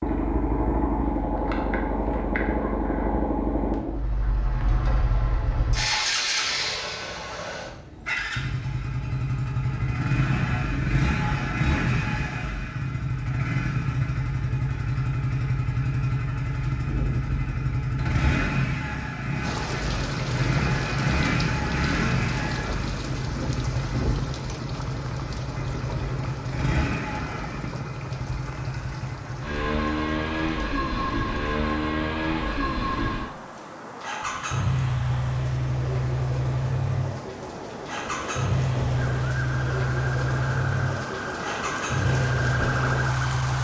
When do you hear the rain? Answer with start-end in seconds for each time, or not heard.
19.4-43.5.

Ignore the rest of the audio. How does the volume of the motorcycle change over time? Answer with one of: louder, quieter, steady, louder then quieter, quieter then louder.
steady.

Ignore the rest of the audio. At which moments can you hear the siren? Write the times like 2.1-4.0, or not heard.
39.0-43.5.